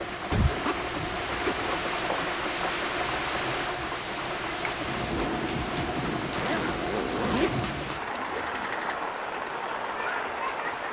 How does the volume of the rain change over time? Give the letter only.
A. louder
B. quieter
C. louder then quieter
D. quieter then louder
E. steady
E.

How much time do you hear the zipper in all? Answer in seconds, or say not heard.
4 s.